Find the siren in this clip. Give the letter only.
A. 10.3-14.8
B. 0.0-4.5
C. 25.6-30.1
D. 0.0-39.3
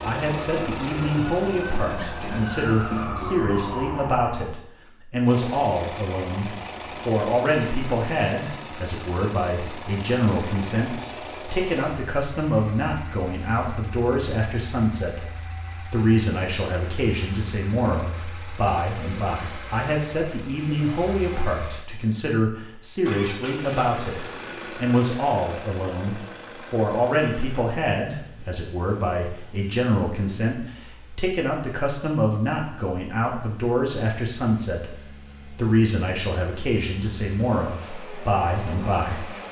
B.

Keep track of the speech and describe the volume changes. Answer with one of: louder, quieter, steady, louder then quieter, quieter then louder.
steady.